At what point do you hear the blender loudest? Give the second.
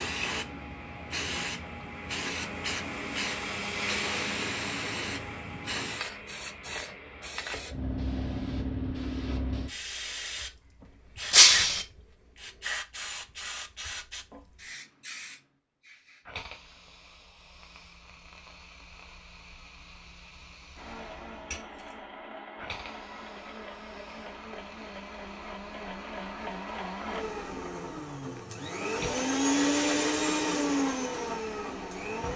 30 s.